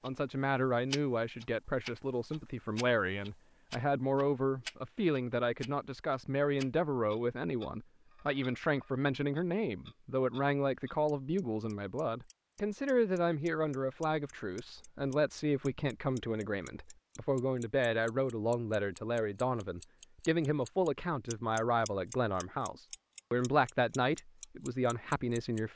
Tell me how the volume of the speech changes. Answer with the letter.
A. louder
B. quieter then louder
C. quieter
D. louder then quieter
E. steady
E.